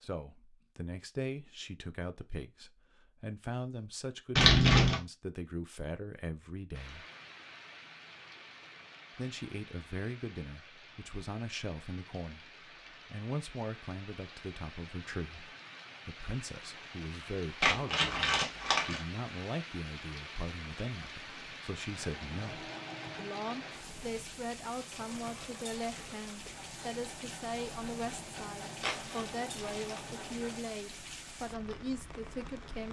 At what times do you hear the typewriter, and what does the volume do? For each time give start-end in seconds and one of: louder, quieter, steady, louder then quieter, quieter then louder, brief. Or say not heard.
not heard.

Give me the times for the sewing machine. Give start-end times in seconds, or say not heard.
21.8-30.8.